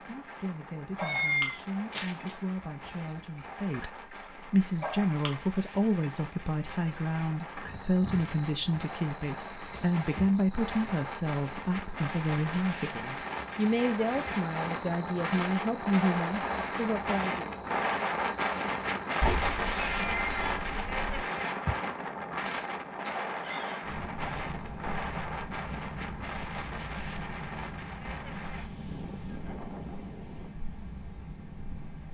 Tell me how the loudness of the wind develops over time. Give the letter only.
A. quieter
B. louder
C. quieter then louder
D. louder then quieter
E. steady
D.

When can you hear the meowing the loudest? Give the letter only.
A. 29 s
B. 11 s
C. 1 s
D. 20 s
C.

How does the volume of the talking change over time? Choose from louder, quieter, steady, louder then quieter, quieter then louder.
louder.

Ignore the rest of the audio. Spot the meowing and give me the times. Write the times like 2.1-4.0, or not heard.
0.9-2.4, 19.2-21.2.